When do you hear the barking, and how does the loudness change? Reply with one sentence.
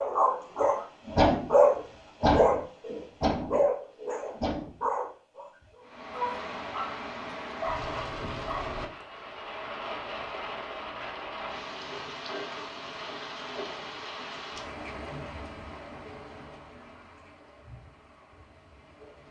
The barking can be heard from 0.0 to 8.8 s, getting quieter.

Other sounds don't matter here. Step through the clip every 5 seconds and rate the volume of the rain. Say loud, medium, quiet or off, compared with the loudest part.
off, loud, loud, medium.